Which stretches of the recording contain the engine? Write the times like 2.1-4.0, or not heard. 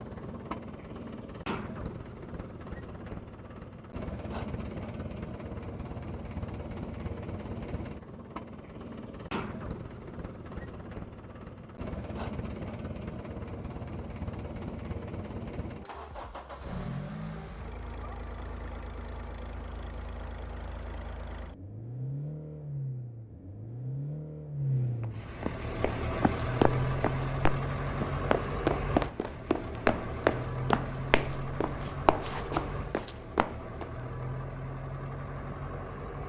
0.0-36.2.